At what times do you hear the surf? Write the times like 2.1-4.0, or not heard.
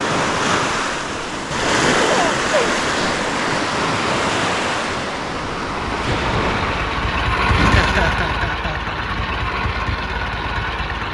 0.0-7.2.